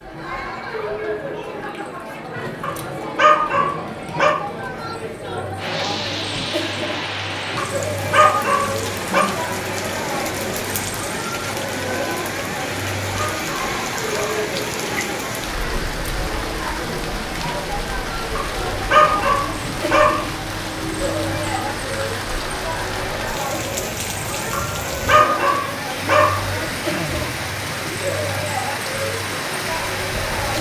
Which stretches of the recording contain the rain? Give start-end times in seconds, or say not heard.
5.5-30.5.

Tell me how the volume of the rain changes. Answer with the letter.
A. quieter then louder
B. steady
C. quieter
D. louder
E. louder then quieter
B.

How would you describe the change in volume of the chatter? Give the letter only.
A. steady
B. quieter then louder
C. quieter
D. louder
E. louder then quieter
A.